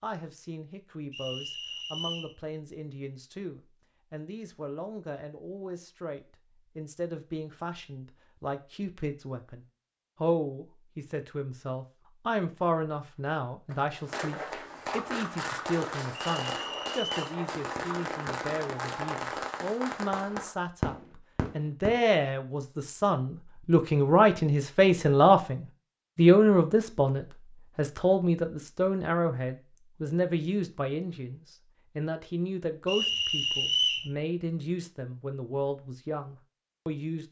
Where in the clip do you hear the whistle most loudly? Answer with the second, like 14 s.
34 s.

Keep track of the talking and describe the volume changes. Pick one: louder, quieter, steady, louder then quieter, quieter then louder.
louder then quieter.